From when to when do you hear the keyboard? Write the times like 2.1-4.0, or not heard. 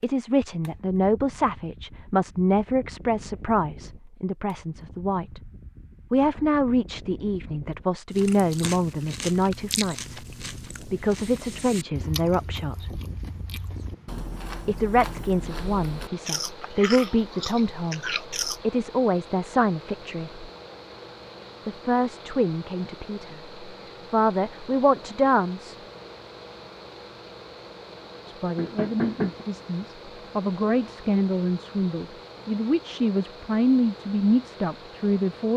not heard.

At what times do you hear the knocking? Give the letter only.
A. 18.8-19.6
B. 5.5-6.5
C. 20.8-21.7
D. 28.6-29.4
D.